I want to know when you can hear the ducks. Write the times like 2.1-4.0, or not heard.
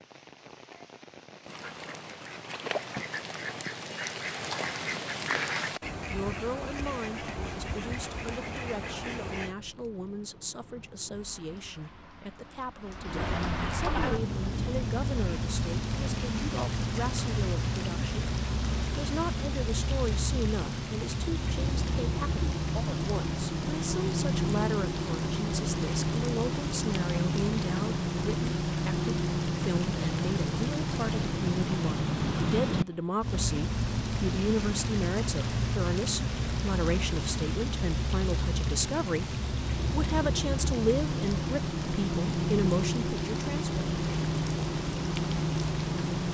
1.4-9.6.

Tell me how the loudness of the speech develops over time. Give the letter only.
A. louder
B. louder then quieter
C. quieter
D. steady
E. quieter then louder
A.